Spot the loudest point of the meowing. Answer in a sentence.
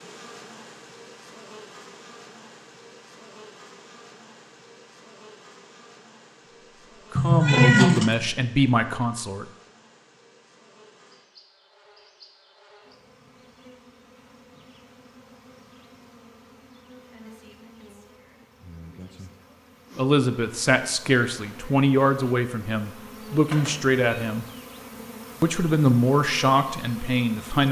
The loudest moment of the meowing is at 8 seconds.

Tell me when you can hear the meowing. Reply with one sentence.
You can hear the meowing from 7.2 to 8.1 s and from 23.5 to 24.0 s.